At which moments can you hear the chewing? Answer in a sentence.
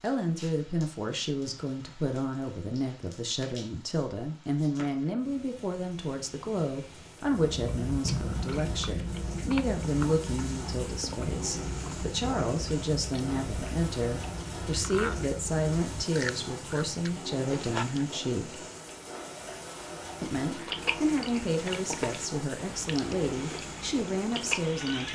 The chewing can be heard from 7.2 to 18.1 s and from 20.4 to 25.1 s.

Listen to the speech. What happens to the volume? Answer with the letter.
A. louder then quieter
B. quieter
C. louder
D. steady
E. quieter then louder
D.